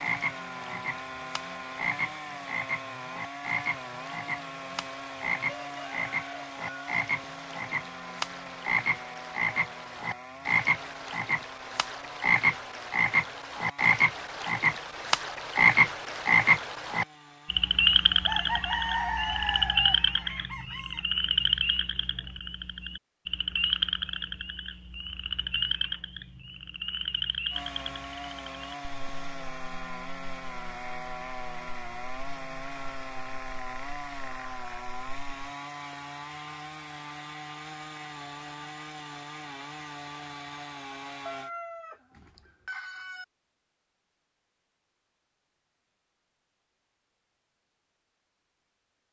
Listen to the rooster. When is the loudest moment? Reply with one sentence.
The loudest moment of the rooster is at 19 seconds.